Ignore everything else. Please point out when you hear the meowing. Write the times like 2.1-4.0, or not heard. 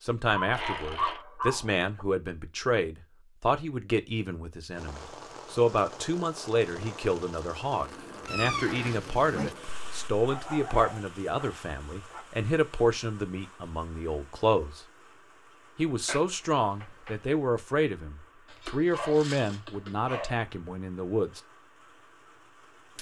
0.5-1.2, 8.2-9.6, 16.1-17.1.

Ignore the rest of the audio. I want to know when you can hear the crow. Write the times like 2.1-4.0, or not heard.
not heard.